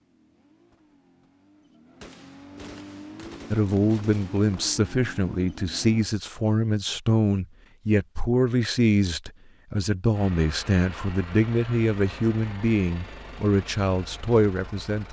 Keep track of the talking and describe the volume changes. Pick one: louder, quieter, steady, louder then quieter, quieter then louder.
steady.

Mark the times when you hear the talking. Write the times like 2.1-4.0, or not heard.
3.5-15.0.